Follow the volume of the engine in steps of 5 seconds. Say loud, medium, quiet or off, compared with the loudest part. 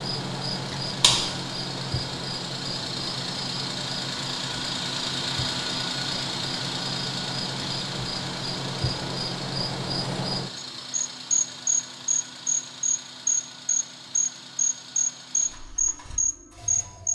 loud, loud, medium, quiet.